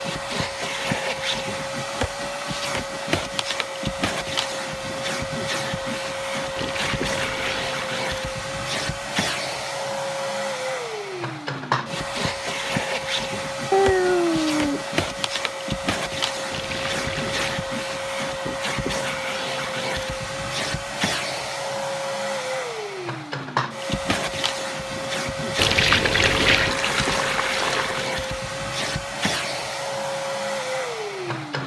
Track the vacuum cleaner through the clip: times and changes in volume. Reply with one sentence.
You can hear the vacuum cleaner from 0.0 to 31.6 s, at a steady volume.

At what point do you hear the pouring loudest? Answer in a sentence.
The volume of the pouring peaks at 26 seconds.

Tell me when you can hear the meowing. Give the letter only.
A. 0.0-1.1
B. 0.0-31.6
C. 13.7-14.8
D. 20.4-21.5
C.